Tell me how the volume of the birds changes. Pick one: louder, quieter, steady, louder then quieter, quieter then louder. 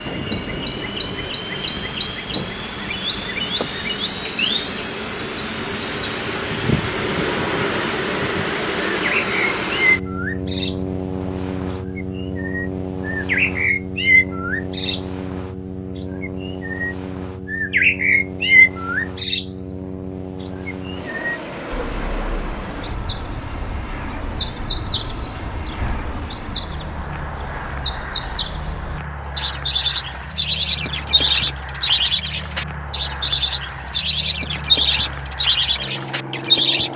louder.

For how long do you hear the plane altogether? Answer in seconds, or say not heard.
37 s.